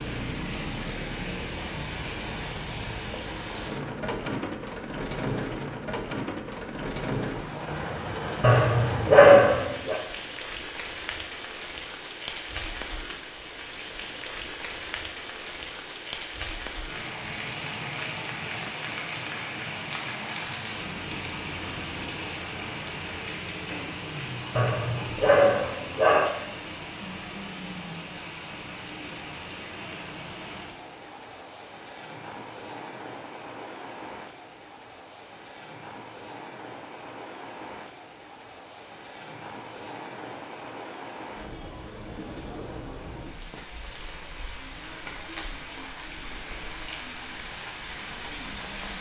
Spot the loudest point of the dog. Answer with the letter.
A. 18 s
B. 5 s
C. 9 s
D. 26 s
C.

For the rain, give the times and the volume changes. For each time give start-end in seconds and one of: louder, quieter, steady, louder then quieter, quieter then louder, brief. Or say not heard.
0.0-48.9 quieter.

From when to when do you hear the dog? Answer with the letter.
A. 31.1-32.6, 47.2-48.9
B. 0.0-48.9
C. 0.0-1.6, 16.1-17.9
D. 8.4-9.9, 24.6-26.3
D.